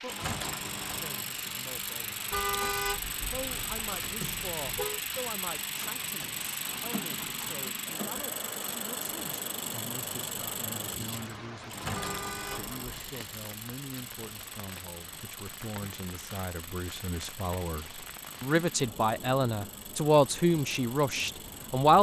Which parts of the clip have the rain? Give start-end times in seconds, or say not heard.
0.0-21.9.